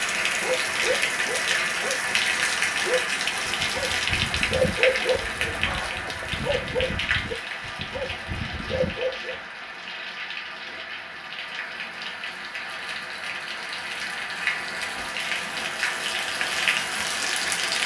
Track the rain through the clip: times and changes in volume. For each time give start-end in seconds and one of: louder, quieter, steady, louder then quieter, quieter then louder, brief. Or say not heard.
0.0-17.8 quieter then louder.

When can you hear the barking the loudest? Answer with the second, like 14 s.
5 s.